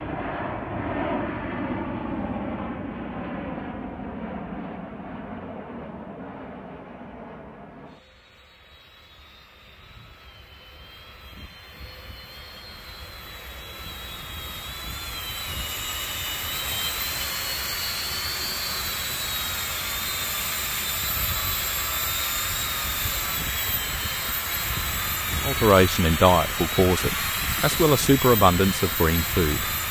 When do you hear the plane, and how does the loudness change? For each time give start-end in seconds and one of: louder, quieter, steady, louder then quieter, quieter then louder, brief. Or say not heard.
0.0-29.8 quieter then louder.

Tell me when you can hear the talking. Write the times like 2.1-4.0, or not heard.
25.4-29.7.